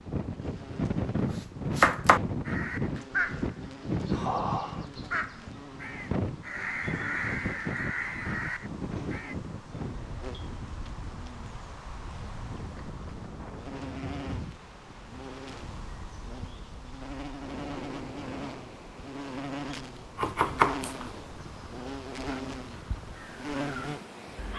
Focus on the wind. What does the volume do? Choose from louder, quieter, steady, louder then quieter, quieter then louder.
quieter.